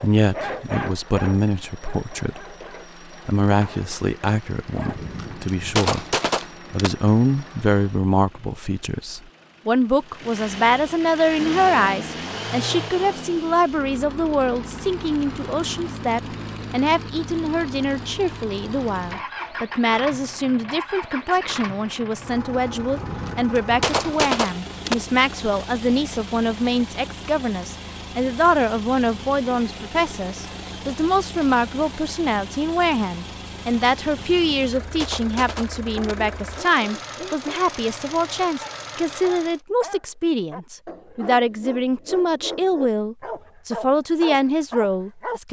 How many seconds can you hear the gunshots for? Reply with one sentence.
The gunshots can be heard for 6 seconds in total.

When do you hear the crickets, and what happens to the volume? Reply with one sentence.
The crickets can't be heard in this clip.